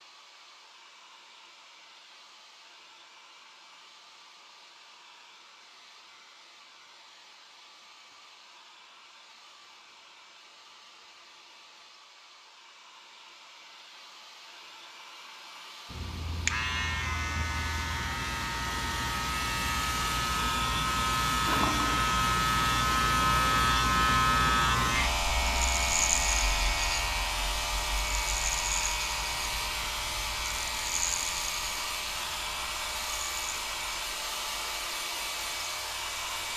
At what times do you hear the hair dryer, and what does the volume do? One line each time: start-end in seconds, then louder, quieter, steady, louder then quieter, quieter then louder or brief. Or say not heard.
0.0-36.5 louder.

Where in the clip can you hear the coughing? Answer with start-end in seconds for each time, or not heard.
not heard.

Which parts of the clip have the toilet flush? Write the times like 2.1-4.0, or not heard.
21.4-22.1.